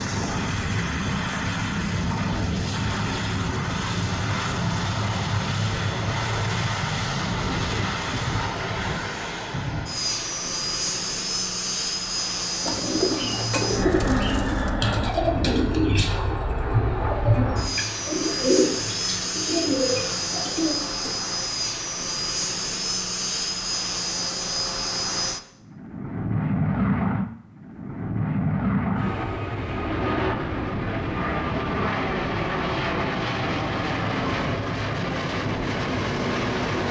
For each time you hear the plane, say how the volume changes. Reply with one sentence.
The plane can be heard from 0.0 to 36.8 s, at a steady volume.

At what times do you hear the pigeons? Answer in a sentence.
You can hear the pigeons from 12.7 to 21.1 s.